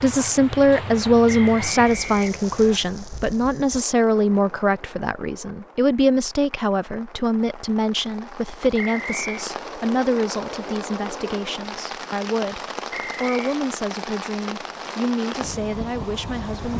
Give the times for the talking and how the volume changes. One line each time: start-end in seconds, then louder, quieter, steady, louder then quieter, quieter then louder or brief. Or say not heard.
0.0-16.7 quieter.